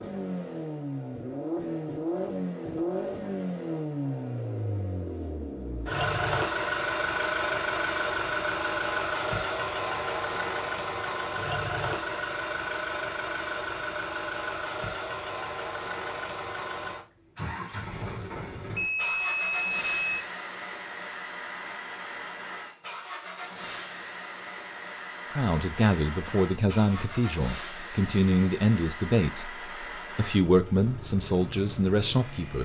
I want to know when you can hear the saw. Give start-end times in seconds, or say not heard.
not heard.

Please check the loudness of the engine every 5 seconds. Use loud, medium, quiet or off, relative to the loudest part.
loud, loud, loud, medium, medium, medium, quiet.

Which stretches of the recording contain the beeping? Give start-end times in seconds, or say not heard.
18.8-20.2.